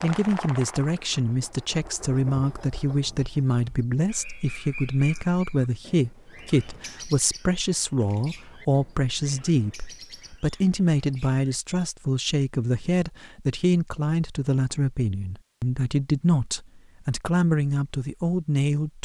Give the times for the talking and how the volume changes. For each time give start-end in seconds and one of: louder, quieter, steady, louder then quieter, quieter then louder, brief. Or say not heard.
0.0-19.0 steady.